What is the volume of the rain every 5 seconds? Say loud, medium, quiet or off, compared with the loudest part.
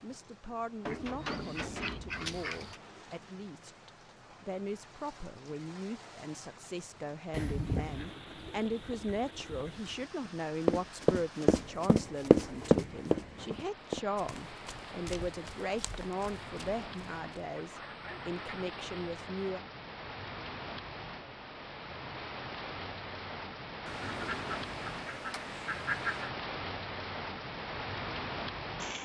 quiet, quiet, medium, medium, loud, loud.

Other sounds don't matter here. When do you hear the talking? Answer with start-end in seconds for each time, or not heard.
0.0-19.6.